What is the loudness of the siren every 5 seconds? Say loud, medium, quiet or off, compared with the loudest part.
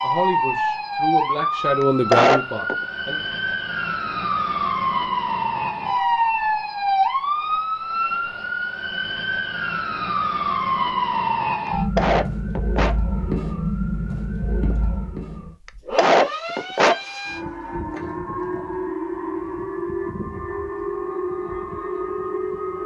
loud, loud, loud, medium, medium.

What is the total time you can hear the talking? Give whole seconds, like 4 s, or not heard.
3 s.